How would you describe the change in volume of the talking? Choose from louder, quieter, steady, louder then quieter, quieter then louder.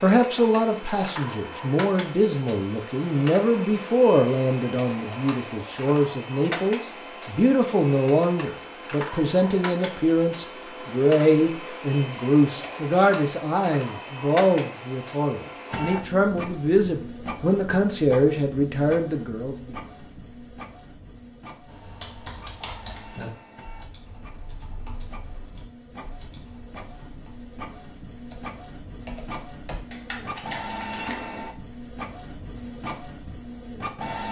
steady.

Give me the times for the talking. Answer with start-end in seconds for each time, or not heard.
0.0-19.8.